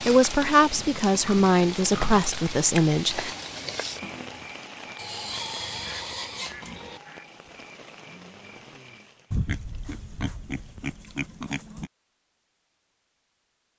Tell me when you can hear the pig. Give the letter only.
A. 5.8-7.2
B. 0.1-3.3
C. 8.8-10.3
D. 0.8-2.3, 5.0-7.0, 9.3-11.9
D.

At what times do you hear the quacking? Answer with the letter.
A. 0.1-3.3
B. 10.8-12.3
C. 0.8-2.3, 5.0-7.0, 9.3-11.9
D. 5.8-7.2
D.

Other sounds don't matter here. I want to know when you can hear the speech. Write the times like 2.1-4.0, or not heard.
0.1-3.3.